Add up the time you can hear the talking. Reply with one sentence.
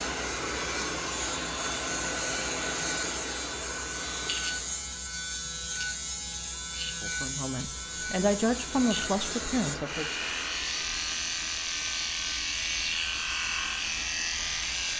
The talking can be heard for 3 seconds in total.